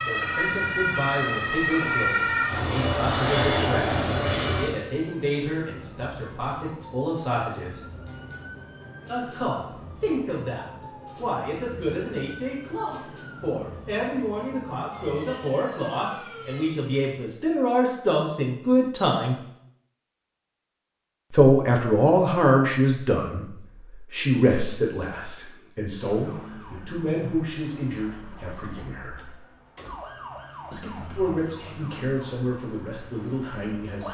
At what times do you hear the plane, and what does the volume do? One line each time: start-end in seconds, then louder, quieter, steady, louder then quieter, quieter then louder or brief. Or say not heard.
0.0-4.8 louder.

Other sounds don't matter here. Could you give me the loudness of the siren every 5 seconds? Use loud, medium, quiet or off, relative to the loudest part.
loud, quiet, quiet, quiet, off, quiet, quiet.